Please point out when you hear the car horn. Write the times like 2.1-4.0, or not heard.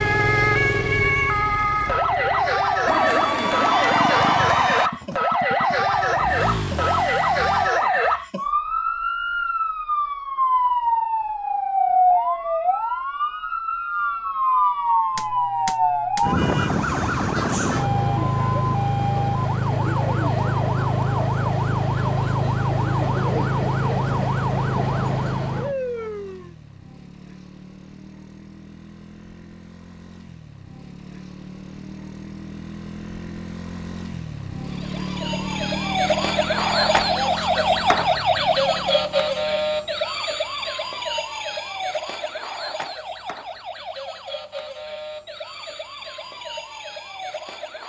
not heard.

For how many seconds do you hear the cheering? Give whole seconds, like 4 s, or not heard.
2 s.